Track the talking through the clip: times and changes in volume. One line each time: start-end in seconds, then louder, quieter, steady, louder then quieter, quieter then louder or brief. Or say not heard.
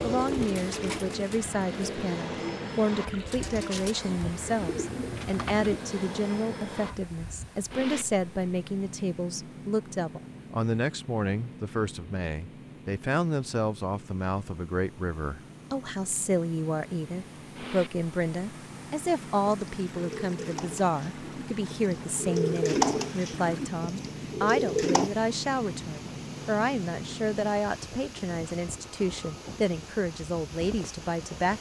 0.0-31.5 steady.